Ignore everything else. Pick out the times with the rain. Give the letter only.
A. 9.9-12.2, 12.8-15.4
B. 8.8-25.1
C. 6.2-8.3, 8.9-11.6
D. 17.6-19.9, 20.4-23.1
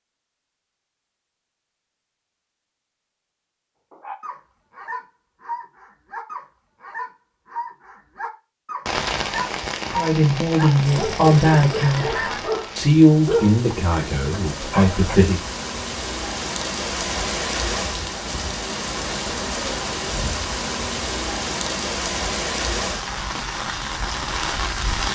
B.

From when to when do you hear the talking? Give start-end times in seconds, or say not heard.
9.9-12.2, 12.8-15.4.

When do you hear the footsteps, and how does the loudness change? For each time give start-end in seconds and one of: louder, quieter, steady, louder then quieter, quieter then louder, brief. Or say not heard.
not heard.